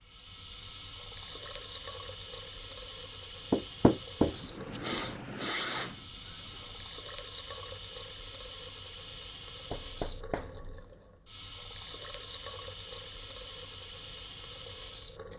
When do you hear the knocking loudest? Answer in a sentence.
The volume of the knocking peaks at 4 seconds.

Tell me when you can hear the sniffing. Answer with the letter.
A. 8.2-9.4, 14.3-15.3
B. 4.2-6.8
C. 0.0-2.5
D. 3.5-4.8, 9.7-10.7
B.